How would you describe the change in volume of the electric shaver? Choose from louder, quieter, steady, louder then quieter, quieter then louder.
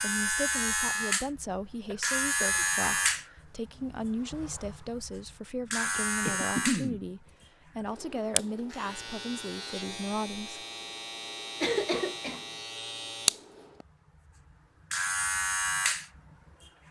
quieter then louder.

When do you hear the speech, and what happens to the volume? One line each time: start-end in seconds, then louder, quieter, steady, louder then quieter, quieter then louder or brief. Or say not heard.
0.0-10.7 steady.